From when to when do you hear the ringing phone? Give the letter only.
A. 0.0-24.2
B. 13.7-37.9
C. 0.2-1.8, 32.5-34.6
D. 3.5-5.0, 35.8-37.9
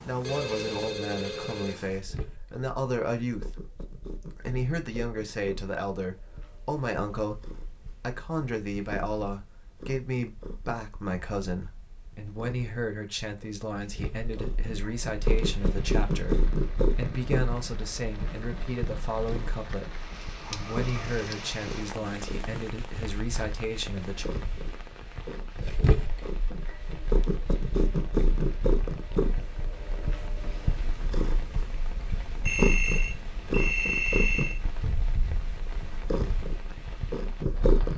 C.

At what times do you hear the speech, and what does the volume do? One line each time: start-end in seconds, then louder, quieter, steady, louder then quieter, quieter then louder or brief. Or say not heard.
0.0-24.2 steady.